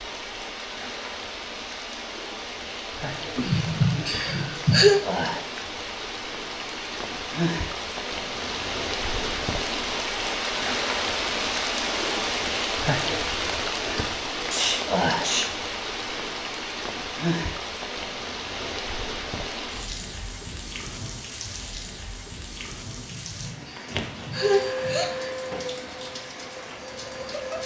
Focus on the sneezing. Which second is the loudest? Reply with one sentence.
The volume of the sneezing peaks at 5 seconds.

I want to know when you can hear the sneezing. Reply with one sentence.
You can hear the sneezing from 3.4 to 5.0 s, from 14.4 to 15.4 s and from 22.9 to 25.1 s.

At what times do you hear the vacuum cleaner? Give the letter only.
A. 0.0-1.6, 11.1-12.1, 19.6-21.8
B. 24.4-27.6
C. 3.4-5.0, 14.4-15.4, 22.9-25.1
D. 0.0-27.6
B.